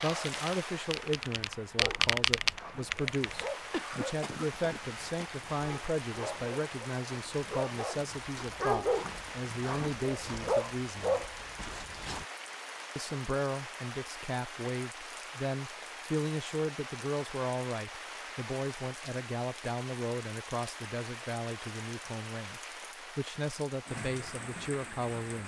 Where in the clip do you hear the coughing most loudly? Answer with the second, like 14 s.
4 s.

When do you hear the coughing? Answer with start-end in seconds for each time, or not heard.
3.3-5.5.